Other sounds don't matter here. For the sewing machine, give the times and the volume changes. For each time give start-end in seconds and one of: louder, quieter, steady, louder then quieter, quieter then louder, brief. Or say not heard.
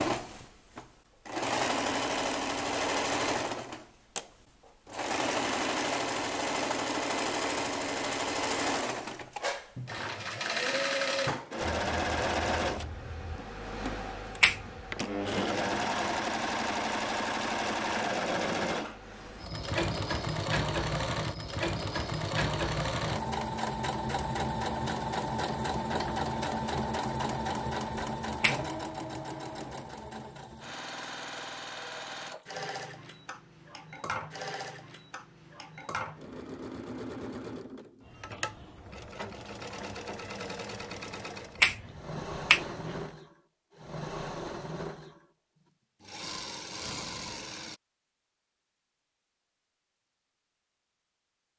0.0-47.8 quieter.